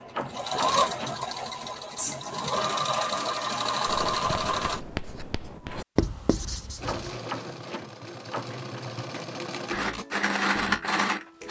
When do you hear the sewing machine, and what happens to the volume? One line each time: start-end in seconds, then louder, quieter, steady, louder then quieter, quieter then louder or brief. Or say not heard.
0.0-4.8 quieter then louder
6.8-11.4 louder.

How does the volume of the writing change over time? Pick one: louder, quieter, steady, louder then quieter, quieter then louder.
louder.